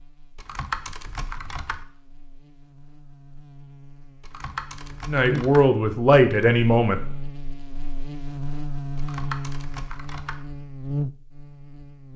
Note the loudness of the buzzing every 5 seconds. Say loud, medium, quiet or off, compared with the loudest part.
quiet, loud, loud.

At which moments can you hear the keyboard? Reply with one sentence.
You can hear the keyboard from 0.3 to 1.9 s, from 4.2 to 5.7 s and from 8.9 to 10.4 s.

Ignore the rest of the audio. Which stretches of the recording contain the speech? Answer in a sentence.
You can hear the speech from 5.0 to 7.0 s.